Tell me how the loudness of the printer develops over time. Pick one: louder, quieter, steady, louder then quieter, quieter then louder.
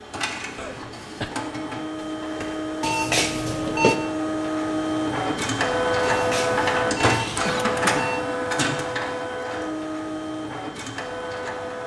louder then quieter.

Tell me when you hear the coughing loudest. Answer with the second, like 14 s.
8 s.